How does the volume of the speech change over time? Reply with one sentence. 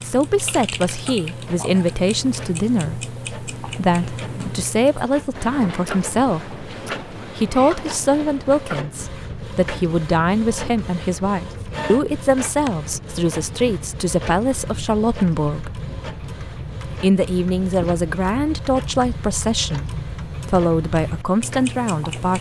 The volume of the speech stays about the same.